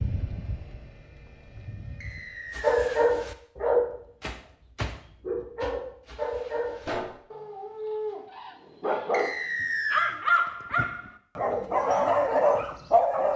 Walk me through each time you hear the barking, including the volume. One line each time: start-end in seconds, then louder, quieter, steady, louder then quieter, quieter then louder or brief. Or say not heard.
2.5-13.3 quieter then louder.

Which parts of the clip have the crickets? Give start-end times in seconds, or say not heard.
not heard.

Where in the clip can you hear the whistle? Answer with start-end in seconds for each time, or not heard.
2.0-3.0, 9.1-10.2.